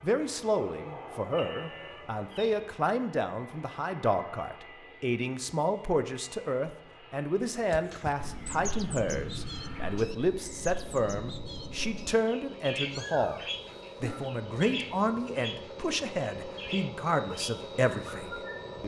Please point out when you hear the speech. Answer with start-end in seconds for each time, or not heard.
0.0-13.4, 14.0-18.8.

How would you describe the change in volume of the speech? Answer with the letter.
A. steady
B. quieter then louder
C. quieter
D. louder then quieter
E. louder
A.